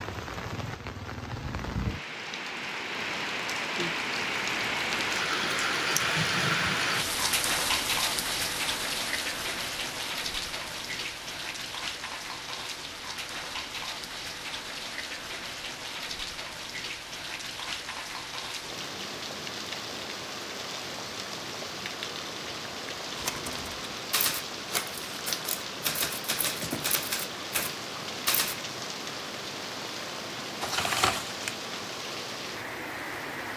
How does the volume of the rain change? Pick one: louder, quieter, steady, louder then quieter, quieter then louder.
quieter.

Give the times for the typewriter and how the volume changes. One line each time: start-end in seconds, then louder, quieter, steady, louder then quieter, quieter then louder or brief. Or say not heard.
23.1-28.6 steady.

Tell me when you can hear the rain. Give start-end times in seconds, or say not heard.
0.0-33.5.